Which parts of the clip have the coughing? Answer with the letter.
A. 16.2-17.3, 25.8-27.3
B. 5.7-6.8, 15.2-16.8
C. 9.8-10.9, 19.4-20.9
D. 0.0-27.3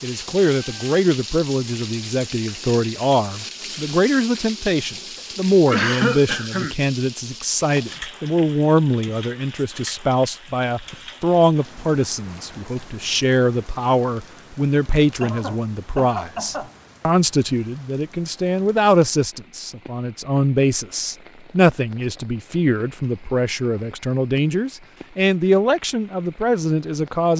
B.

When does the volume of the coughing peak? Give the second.
6 s.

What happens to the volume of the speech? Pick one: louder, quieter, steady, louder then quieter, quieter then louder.
steady.